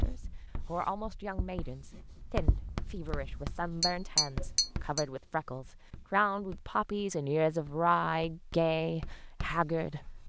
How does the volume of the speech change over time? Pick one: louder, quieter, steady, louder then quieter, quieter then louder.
louder.